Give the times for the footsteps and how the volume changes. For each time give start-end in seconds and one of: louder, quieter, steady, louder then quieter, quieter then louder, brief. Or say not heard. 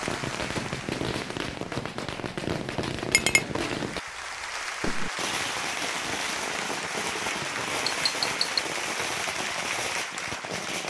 not heard.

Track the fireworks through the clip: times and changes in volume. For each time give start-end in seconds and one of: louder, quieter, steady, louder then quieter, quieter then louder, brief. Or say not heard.
0.0-10.8 steady.